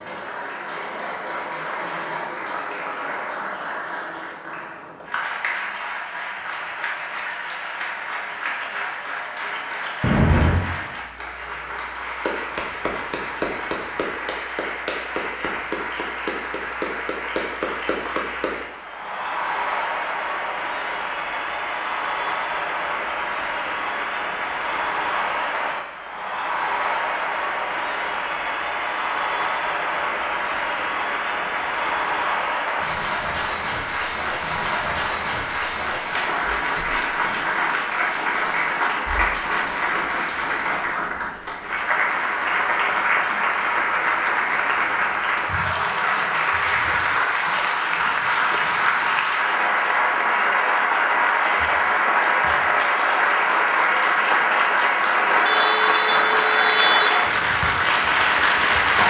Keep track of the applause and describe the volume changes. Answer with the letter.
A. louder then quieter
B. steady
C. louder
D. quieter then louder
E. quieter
C.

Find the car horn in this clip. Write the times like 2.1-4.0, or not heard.
10.0-10.7, 55.3-57.2.